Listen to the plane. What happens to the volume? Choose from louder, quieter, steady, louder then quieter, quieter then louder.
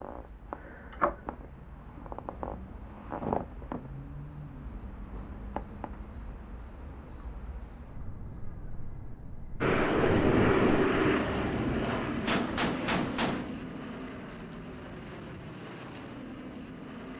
quieter.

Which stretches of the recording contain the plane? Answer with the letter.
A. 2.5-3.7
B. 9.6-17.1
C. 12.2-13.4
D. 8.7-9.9
B.